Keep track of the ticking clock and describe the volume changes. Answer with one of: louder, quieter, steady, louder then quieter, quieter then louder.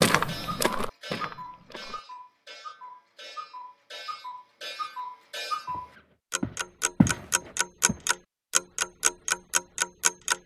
louder.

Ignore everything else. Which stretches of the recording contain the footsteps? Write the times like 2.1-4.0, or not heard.
0.0-2.0, 5.7-8.1.